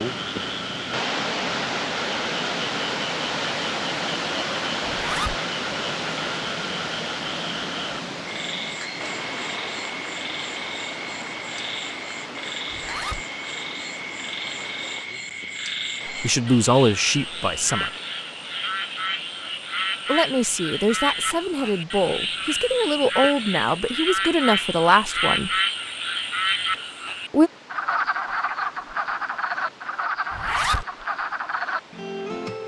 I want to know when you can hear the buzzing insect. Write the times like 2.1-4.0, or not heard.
not heard.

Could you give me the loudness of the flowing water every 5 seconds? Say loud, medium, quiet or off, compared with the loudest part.
loud, loud, medium, quiet, quiet, quiet, quiet.